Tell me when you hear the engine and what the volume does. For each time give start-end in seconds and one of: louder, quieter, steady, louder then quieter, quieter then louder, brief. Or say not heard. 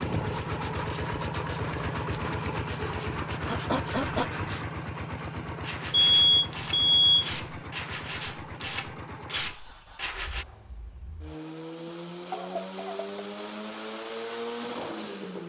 0.0-15.4 quieter then louder.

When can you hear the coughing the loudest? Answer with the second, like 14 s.
4 s.